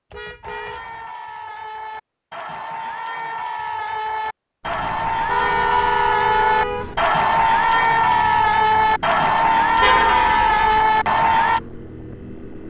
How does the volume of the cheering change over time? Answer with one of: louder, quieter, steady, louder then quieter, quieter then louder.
louder.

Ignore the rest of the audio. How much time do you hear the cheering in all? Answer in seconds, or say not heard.
11 s.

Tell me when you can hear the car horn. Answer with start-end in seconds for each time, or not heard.
0.1-1.1, 5.2-7.0, 9.8-10.8.